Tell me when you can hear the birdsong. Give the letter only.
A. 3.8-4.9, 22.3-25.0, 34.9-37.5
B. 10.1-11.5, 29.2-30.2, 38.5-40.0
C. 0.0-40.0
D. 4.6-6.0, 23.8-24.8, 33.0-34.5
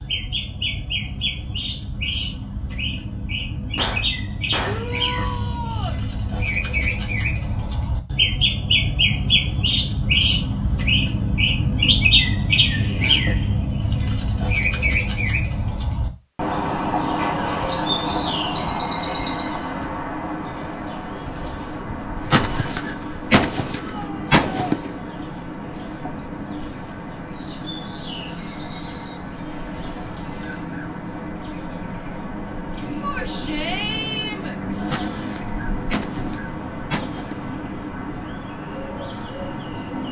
C.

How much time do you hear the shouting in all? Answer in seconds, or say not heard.
4 s.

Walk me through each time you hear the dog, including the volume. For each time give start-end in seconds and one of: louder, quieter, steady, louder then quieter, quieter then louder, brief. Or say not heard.
not heard.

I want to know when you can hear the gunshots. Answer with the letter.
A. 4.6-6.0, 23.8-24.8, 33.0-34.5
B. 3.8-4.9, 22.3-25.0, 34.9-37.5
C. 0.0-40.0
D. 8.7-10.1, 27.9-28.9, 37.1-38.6
B.